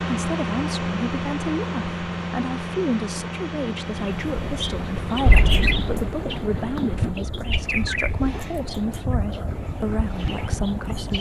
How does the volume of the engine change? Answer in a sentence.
The loudness of the engine goes down.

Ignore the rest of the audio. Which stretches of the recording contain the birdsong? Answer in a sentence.
The birdsong can be heard from 3.8 to 11.1 s.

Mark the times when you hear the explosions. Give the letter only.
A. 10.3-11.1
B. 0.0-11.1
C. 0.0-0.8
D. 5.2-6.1
D.